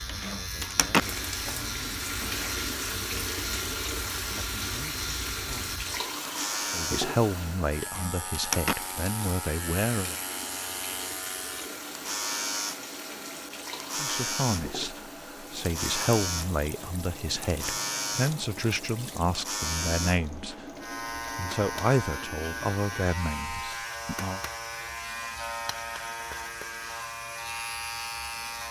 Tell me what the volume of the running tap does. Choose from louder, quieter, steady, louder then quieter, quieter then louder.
quieter.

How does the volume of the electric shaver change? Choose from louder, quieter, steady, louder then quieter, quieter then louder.
steady.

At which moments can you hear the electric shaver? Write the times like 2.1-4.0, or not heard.
0.0-28.6.